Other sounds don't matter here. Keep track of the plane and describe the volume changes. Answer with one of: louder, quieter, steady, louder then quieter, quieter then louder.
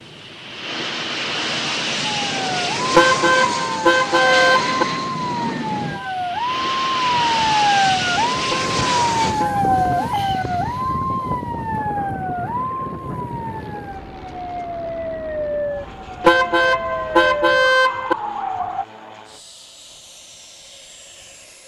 quieter.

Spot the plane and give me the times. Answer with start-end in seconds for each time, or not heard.
0.0-21.6.